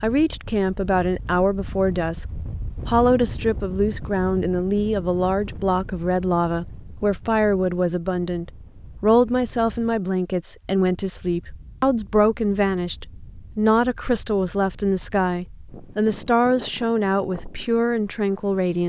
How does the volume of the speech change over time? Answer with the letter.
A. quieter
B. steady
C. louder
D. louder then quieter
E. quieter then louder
B.